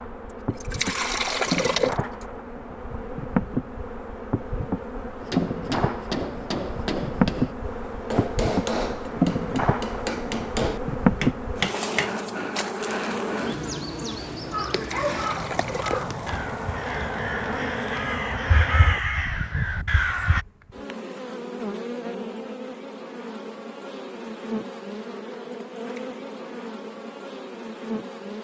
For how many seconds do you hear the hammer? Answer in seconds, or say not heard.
7 s.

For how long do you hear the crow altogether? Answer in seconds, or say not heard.
6 s.